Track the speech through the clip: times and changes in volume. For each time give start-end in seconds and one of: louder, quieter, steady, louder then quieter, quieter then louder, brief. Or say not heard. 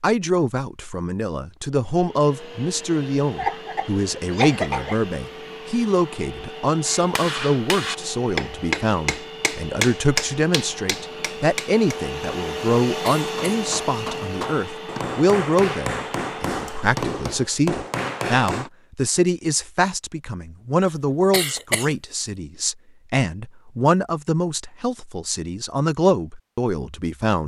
0.0-27.4 steady.